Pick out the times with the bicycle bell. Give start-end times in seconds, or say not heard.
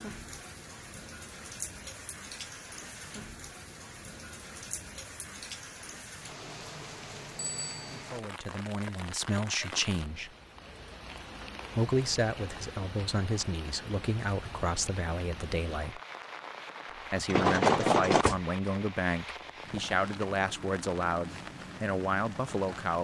7.3-7.8, 17.3-18.4.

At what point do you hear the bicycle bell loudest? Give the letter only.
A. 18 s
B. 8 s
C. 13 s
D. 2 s
A.